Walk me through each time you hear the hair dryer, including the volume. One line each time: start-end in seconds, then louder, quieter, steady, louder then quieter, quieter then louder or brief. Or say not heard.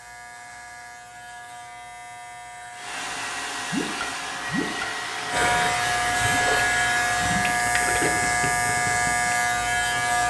2.7-7.4 steady.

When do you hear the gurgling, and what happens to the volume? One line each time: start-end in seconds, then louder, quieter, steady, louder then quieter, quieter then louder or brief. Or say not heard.
3.7-9.3 steady.